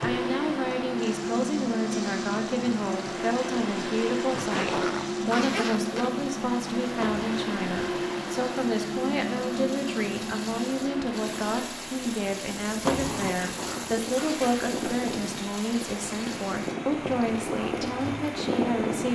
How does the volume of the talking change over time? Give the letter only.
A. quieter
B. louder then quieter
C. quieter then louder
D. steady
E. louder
D.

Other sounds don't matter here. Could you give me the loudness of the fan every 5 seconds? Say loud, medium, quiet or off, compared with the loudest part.
loud, loud, medium, loud.